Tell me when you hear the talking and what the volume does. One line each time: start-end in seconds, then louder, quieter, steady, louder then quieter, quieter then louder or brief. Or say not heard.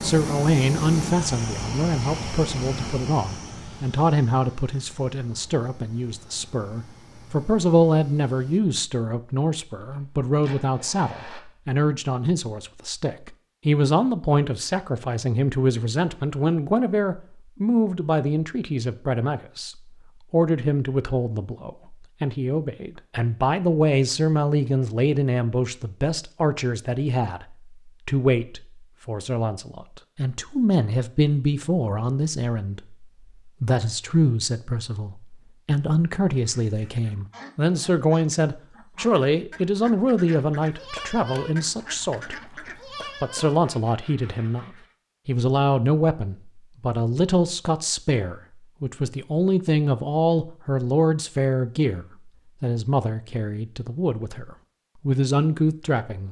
0.0-42.4 steady
43.2-56.2 steady.